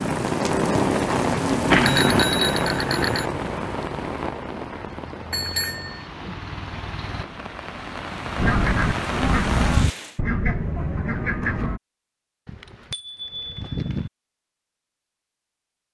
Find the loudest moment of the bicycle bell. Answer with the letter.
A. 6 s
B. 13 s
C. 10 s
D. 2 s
D.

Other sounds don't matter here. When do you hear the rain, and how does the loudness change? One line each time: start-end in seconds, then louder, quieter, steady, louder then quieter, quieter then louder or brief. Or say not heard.
0.0-10.2 quieter then louder.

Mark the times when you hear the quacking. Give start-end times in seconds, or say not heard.
8.3-11.8.